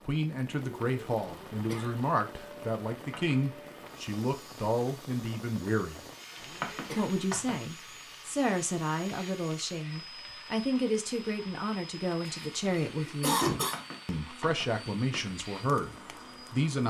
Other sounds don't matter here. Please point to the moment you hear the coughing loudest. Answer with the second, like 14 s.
13 s.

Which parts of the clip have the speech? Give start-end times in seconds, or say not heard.
0.1-6.0, 7.0-13.4, 14.1-16.8.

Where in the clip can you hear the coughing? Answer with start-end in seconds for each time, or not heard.
1.1-2.1, 6.3-7.3, 12.2-13.8.